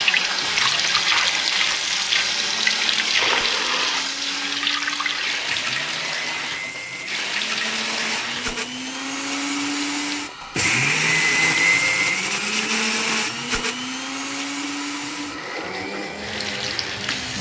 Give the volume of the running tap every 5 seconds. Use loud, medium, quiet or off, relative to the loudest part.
loud, medium, quiet, medium.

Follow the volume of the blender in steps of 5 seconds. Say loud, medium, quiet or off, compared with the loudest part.
quiet, medium, loud, medium.